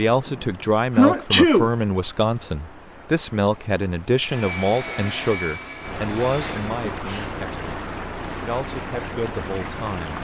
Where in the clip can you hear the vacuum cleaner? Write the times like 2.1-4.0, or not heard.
4.2-6.8.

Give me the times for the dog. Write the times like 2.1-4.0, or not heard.
not heard.